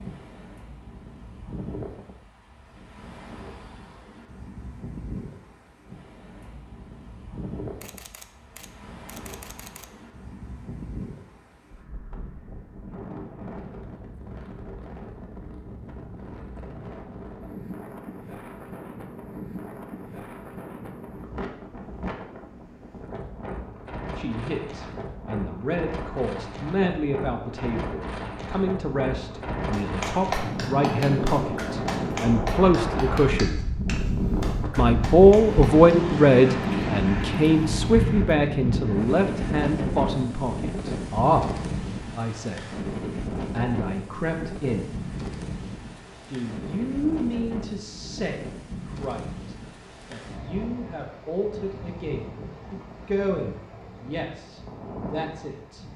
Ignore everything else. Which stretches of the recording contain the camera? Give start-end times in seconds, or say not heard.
7.8-9.9.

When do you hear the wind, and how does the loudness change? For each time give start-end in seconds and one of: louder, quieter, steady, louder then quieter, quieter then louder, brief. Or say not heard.
0.0-55.9 louder then quieter.